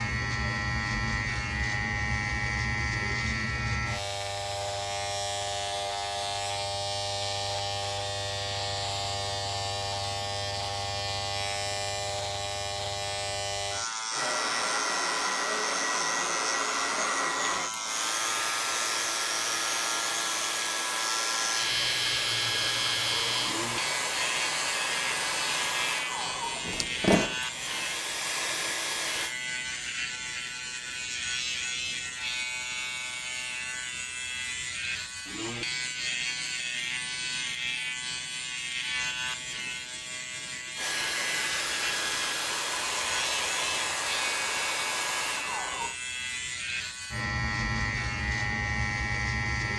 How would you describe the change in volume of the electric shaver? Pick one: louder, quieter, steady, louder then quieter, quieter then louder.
steady.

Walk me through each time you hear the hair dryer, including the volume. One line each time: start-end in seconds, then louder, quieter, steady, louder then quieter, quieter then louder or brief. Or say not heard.
14.1-29.4 steady
40.8-46.0 steady.